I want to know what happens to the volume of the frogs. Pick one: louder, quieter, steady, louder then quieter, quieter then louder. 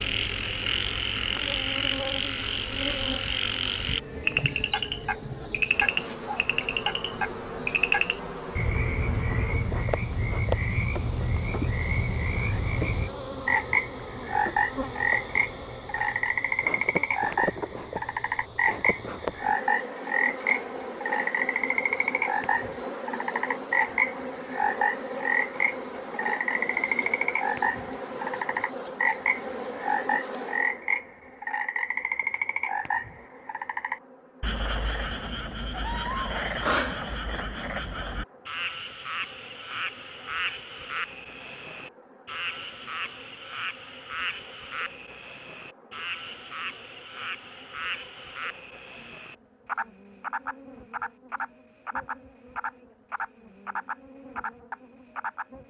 quieter.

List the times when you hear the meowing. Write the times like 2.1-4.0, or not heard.
35.7-37.1.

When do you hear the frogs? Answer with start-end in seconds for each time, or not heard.
0.0-55.6.